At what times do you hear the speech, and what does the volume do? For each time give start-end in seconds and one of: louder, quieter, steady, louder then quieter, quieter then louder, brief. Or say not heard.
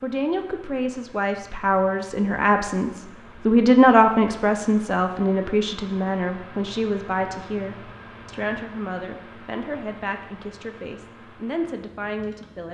0.0-12.7 louder then quieter.